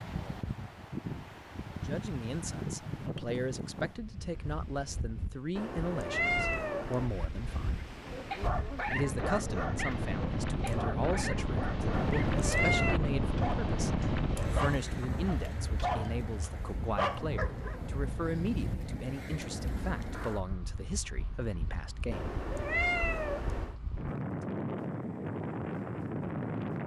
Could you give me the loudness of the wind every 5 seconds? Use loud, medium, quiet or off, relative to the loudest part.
medium, medium, loud, medium, medium, loud.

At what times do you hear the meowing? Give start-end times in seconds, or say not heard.
5.5-7.1, 12.0-13.0, 22.1-23.8.